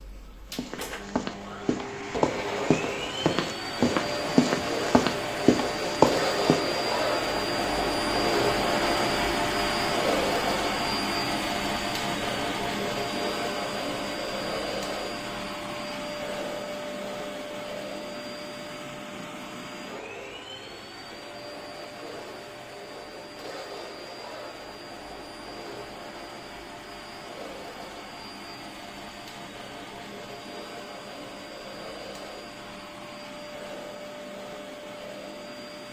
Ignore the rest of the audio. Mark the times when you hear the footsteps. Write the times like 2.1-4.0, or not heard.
0.5-6.7.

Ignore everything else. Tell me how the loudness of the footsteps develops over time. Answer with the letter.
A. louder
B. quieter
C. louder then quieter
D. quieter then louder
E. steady
A.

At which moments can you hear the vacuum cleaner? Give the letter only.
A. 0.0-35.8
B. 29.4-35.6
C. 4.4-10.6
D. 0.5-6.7
A.